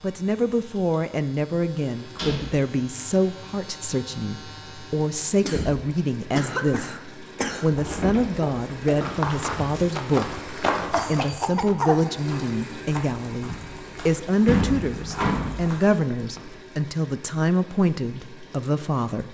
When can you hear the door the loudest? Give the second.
15 s.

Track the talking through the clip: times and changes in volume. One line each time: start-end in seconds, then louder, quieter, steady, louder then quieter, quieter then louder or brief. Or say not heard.
0.0-19.2 steady.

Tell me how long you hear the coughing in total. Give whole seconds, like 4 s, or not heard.
4 s.